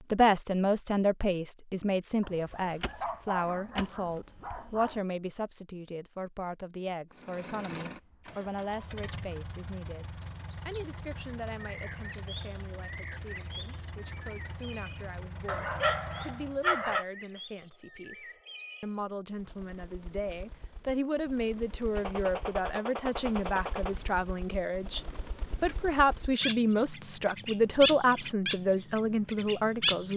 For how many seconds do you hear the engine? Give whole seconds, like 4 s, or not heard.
10 s.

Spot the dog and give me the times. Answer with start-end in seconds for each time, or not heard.
2.2-5.0, 15.4-17.1.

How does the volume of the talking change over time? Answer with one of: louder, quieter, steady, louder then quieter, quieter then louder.
quieter then louder.